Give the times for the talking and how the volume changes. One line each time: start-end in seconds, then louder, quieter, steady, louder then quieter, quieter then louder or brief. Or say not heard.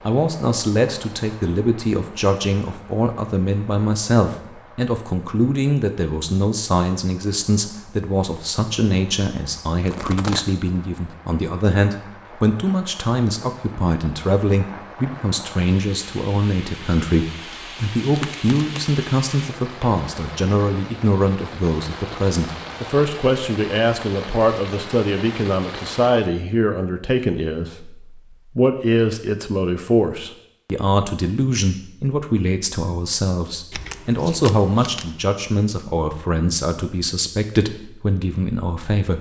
0.1-39.1 steady.